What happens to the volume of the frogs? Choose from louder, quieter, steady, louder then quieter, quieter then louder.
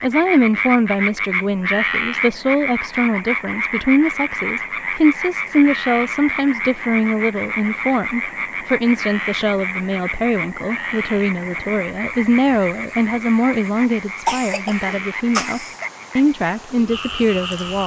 quieter.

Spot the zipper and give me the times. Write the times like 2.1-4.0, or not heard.
not heard.